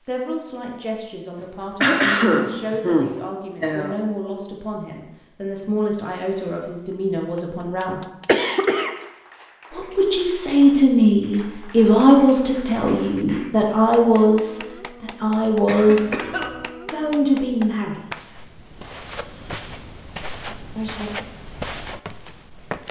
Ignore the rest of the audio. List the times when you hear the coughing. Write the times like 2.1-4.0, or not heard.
1.8-4.0, 8.2-8.9, 15.7-16.6.